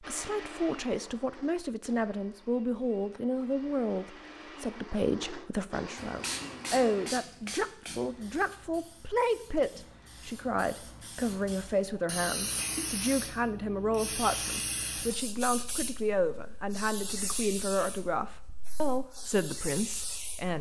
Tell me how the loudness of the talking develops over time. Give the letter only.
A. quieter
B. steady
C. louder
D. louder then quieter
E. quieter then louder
B.